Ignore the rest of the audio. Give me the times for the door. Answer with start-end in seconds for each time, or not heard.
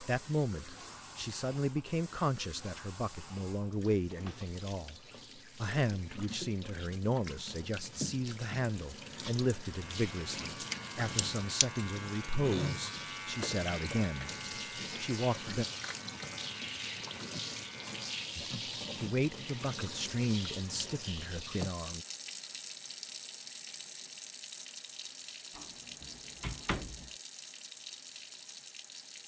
25.6-27.1.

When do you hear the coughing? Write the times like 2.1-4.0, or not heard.
11.2-11.7.